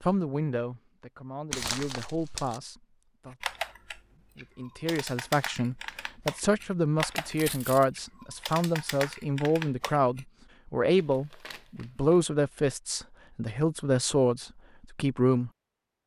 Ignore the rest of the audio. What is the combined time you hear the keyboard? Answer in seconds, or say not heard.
7 s.